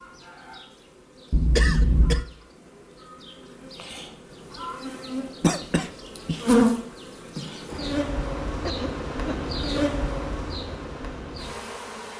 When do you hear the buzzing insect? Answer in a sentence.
The buzzing insect can be heard from 0.0 to 12.1 s.